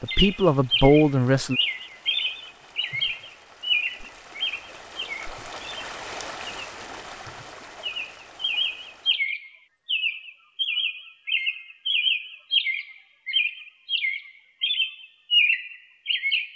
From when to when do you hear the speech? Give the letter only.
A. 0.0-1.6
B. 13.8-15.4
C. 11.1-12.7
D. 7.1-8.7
A.